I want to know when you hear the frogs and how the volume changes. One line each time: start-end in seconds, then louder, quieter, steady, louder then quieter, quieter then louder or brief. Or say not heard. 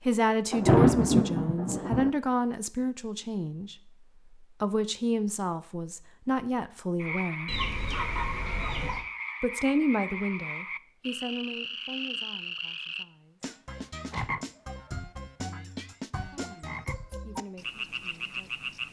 7.0-18.8 steady.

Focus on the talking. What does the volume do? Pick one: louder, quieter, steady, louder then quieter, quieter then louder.
quieter.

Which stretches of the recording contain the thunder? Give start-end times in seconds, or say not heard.
0.5-2.1.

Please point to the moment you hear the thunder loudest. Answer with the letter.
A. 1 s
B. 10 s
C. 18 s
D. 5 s
A.